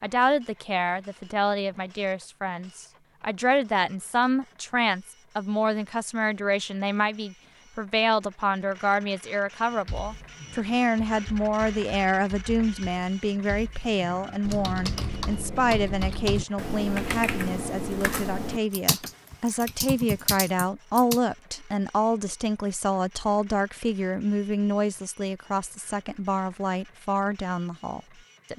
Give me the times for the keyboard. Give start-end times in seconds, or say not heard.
9.8-21.2.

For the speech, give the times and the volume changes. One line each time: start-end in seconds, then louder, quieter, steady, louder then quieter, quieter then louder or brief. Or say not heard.
0.0-28.5 steady.